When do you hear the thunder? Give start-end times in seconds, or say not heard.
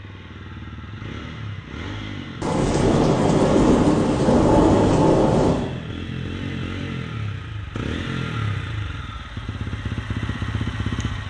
2.4-5.7.